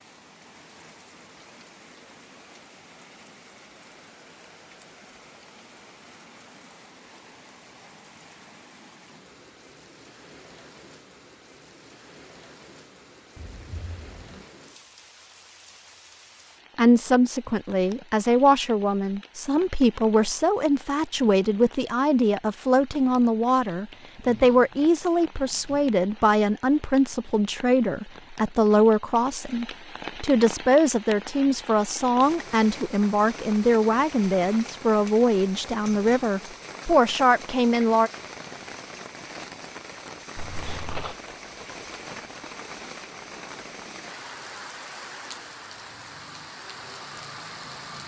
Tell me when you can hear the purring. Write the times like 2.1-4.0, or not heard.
not heard.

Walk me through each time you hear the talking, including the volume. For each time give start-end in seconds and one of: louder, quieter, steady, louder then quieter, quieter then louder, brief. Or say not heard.
16.8-38.1 steady.